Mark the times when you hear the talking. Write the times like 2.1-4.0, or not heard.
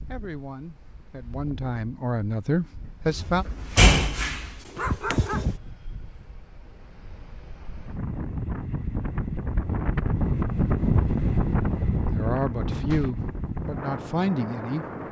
0.1-3.5, 12.1-14.8.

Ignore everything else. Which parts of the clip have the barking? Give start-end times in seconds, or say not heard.
4.8-6.2.